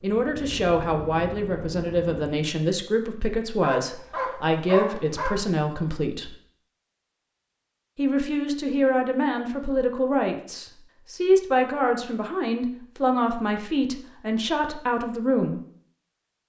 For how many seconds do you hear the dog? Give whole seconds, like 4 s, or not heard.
2 s.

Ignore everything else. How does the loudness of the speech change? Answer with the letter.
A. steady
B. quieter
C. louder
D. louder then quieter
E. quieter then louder
A.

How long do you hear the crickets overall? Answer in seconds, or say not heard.
not heard.